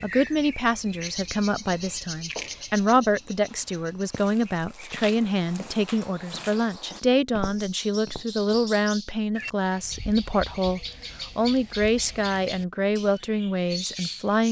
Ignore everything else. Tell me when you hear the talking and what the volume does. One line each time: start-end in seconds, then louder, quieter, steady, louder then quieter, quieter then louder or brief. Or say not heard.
0.0-14.4 steady.